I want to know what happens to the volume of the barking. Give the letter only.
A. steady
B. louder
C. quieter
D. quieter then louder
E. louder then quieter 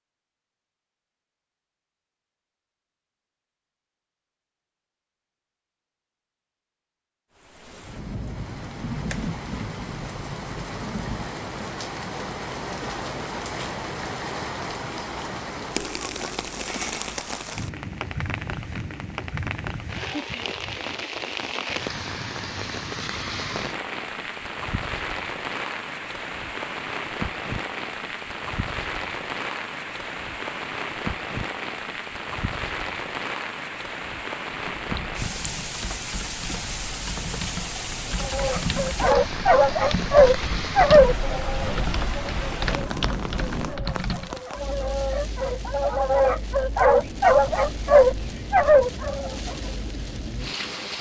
D.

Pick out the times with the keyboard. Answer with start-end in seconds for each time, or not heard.
34.8-44.4.